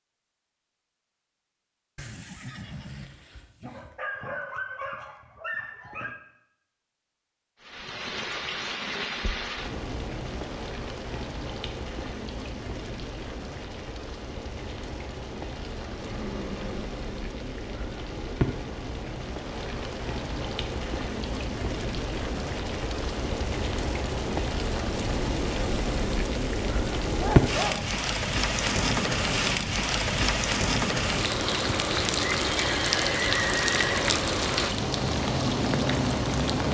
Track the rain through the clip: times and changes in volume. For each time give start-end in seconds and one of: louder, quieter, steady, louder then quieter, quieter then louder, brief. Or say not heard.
7.6-36.7 louder.